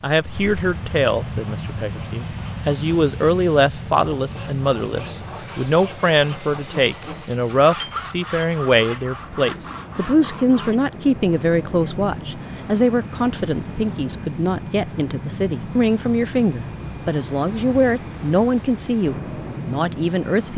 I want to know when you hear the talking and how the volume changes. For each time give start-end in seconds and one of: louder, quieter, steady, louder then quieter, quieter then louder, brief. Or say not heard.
0.0-20.5 steady.